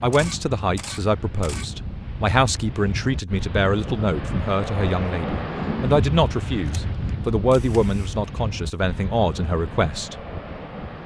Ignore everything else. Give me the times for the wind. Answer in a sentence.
You can hear the wind from 0.1 to 11.0 s.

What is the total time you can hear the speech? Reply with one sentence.
The speech can be heard for 10 seconds in total.